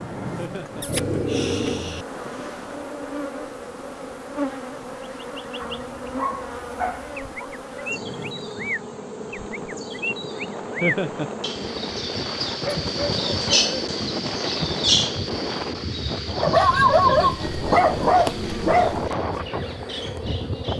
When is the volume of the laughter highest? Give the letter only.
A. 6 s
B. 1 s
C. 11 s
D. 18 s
C.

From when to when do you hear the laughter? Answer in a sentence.
The laughter can be heard from 0.3 to 0.8 s, from 10.8 to 11.3 s and from 17.0 to 17.4 s.